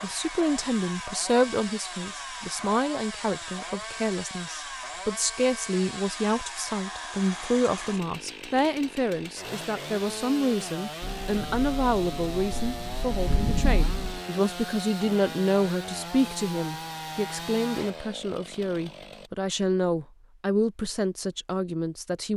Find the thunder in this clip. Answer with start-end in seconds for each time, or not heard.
11.0-14.2.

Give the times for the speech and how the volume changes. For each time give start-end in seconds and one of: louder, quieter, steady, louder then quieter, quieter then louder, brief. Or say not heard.
0.0-22.3 steady.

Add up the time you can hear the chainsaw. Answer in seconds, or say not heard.
19 s.